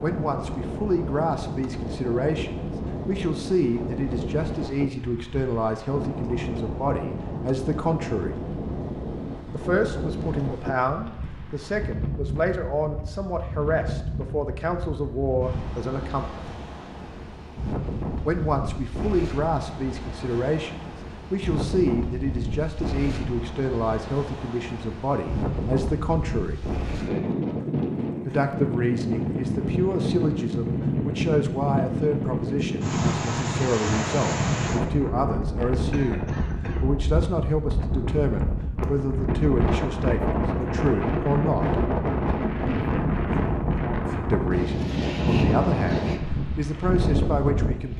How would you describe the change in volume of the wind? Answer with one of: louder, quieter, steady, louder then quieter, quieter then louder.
louder.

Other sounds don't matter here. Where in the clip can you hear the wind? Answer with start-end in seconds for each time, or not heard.
0.0-47.9.